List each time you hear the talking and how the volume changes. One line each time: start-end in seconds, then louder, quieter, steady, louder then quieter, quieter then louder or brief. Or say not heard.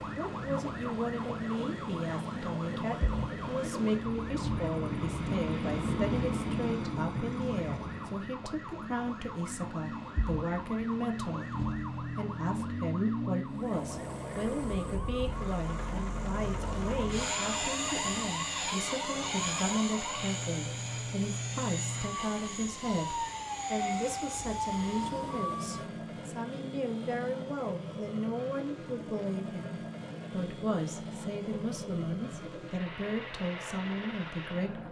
0.1-34.8 steady.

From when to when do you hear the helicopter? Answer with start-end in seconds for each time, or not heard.
0.0-8.3, 13.4-34.8.